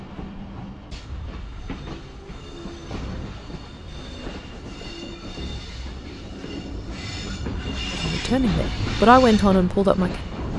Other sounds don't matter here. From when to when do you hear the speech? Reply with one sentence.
The speech can be heard from 7.9 to 10.3 s.